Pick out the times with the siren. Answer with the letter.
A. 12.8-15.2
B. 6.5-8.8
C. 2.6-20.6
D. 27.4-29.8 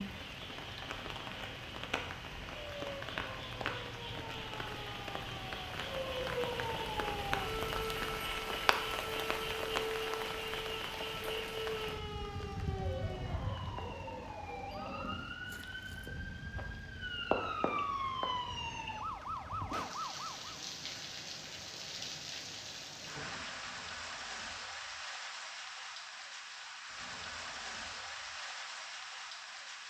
C.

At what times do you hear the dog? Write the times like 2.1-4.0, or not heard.
12.8-15.2.